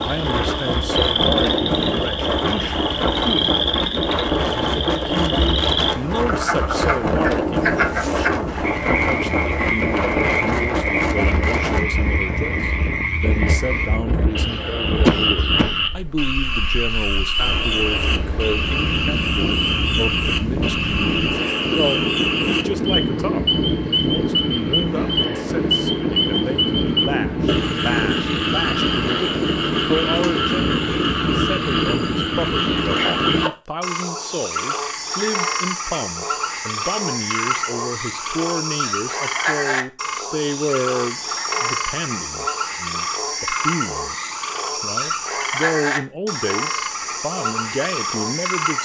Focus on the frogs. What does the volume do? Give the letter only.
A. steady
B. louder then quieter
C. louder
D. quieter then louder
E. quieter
A.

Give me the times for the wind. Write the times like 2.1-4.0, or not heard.
0.0-33.5.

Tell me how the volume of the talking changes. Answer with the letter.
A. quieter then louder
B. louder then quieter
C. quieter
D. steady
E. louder
D.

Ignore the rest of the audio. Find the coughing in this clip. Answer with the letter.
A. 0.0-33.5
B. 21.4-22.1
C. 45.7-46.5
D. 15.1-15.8
D.